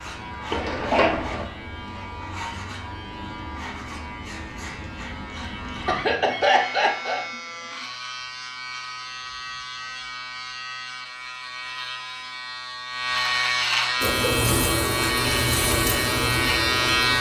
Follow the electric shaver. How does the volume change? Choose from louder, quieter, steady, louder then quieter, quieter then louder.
louder.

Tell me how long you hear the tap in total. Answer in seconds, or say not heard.
3 s.